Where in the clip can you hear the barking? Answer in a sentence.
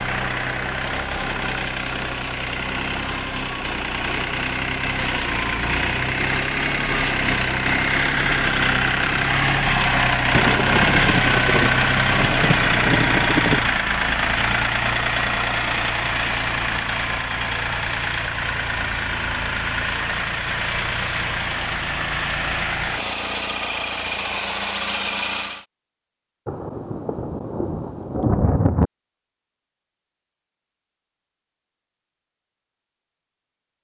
The barking can't be heard in this clip.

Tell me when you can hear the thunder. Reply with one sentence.
The thunder can be heard from 10.3 to 13.6 s and from 26.4 to 28.9 s.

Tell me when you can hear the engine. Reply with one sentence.
The engine can be heard from 0.0 to 25.6 s.